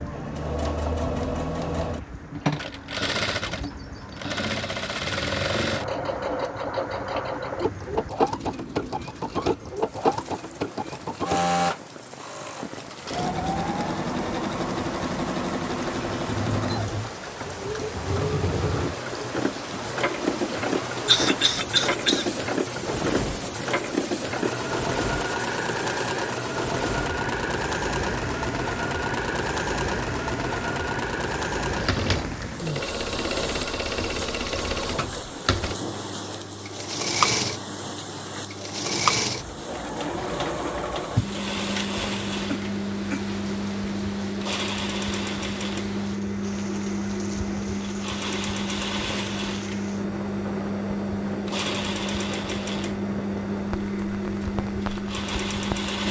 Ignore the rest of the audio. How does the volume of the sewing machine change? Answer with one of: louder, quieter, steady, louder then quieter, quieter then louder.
steady.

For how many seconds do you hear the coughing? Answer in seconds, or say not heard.
2 s.